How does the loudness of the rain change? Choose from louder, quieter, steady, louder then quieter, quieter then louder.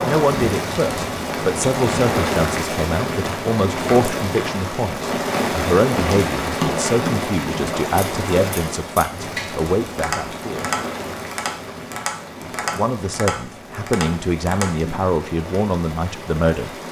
quieter.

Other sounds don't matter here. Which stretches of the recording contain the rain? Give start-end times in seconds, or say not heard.
0.0-16.8.